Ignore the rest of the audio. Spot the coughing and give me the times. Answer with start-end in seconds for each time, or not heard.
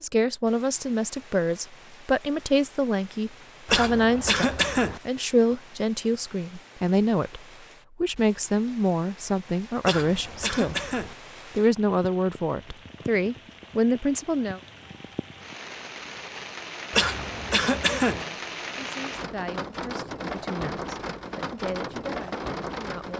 3.6-5.0, 9.8-11.2, 16.9-18.2.